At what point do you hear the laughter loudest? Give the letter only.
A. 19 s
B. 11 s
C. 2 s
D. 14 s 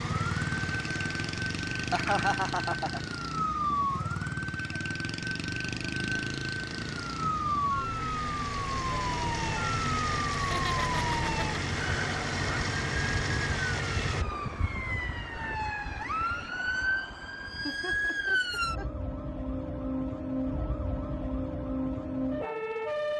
C.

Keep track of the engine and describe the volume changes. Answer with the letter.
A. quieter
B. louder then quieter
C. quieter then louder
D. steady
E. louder
C.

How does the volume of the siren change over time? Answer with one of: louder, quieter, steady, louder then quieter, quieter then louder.
steady.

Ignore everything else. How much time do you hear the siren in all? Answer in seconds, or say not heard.
23 s.